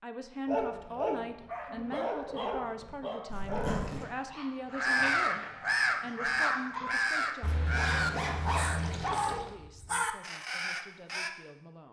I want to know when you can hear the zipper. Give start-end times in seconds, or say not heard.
3.2-4.0, 7.4-9.4.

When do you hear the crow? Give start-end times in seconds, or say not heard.
4.7-11.3.